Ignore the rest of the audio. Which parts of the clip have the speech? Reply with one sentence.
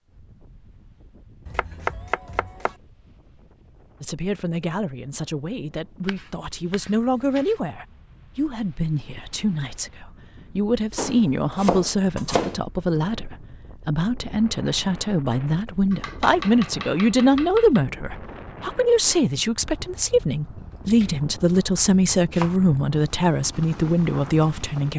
You can hear the speech from 4.0 to 24.9 s.